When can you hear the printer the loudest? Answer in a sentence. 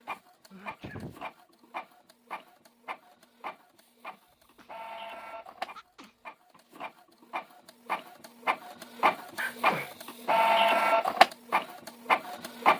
The volume of the printer peaks at 11 seconds.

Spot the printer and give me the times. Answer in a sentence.
The printer can be heard from 0.0 to 12.7 s.